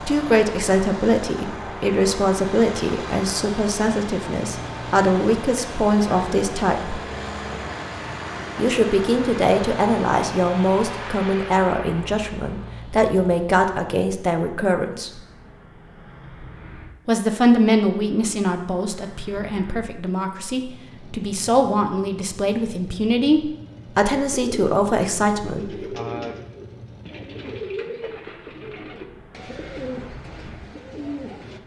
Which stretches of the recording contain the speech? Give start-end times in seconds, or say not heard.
0.0-7.0, 8.6-15.1, 17.1-25.7.